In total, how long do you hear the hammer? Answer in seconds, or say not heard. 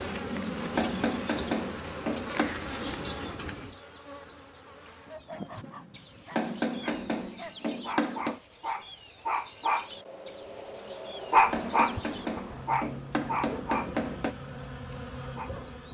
7 s.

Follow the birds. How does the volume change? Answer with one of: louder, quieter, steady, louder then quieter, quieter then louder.
quieter.